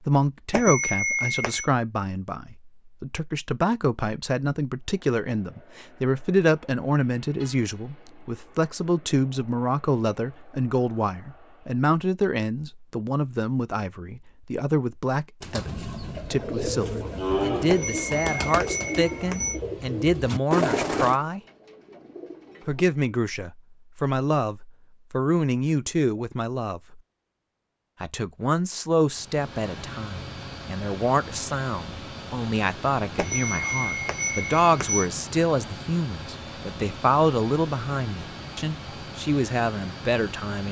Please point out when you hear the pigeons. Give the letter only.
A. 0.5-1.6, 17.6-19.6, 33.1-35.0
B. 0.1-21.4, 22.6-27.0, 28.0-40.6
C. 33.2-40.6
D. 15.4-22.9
D.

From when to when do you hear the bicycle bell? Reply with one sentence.
You can hear the bicycle bell from 0.5 to 1.6 s, from 17.6 to 19.6 s and from 33.1 to 35.0 s.